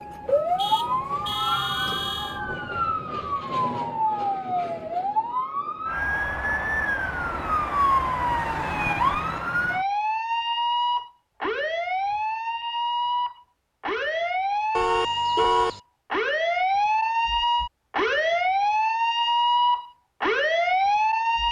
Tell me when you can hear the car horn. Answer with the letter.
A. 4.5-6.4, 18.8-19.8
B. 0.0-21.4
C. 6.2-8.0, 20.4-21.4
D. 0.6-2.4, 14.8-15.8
D.